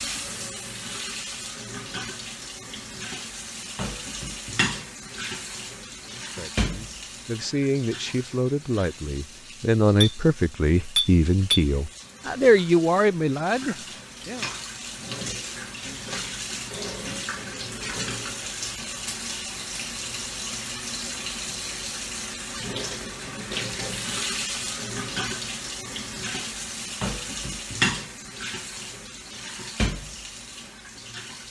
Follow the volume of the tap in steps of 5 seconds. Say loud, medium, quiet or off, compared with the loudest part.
loud, medium, medium, loud, loud, loud, medium.